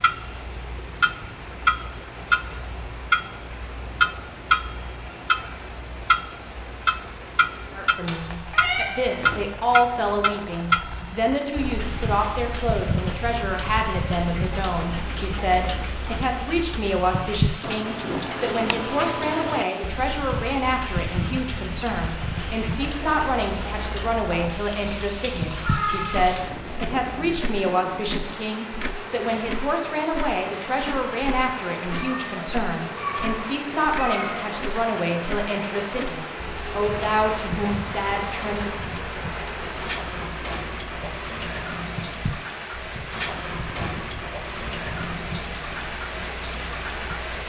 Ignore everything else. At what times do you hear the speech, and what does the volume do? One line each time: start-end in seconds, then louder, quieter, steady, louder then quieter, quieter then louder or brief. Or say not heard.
7.8-38.8 steady.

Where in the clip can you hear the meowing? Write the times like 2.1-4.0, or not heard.
8.1-9.4, 25.4-27.4, 31.9-34.6.